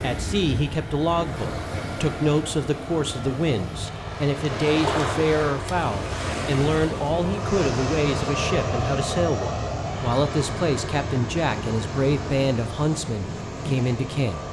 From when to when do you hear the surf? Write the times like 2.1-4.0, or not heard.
0.0-14.4.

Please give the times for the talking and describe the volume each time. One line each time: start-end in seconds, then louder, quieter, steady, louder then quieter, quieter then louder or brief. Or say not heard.
0.0-14.4 steady.